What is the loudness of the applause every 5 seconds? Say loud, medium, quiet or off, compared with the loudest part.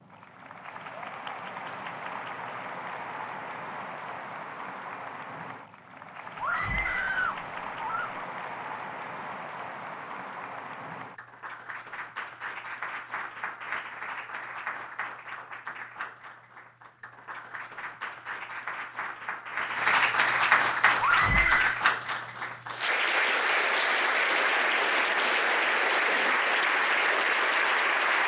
quiet, quiet, quiet, medium, loud, loud.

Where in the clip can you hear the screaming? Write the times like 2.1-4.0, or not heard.
6.3-8.2, 21.0-21.8.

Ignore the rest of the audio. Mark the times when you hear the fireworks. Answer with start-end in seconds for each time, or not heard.
not heard.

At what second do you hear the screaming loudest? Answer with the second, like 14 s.
21 s.